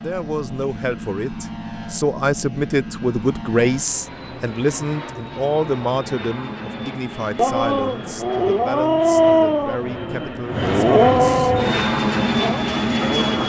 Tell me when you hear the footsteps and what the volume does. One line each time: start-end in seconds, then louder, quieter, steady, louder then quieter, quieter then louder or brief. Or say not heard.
not heard.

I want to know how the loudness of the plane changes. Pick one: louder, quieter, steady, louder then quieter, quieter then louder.
louder.